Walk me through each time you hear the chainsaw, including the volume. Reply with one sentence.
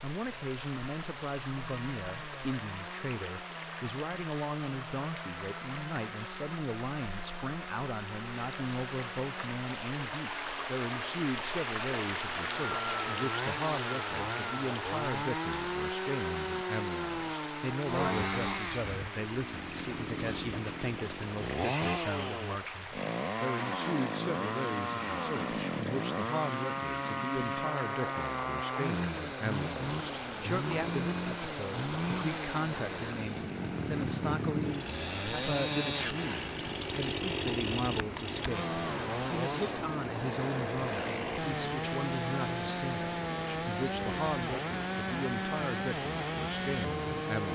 The chainsaw can be heard from 0.1 to 47.4 s, getting louder.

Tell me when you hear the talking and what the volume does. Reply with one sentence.
The talking can be heard from 0.0 to 47.4 s, at a steady volume.